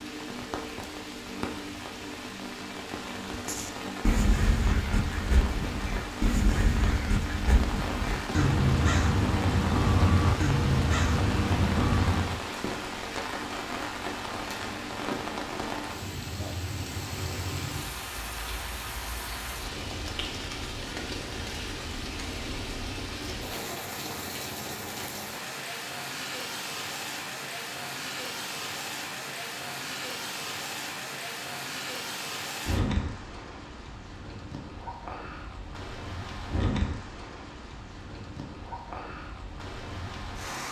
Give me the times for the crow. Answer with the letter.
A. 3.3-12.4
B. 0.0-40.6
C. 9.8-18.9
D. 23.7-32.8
A.